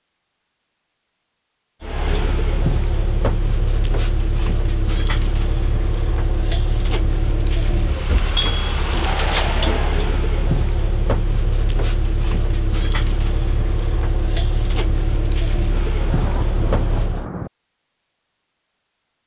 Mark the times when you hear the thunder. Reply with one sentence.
You can hear the thunder from 16.0 to 17.5 s.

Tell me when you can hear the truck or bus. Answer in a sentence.
You can hear the truck or bus from 1.8 to 17.3 s.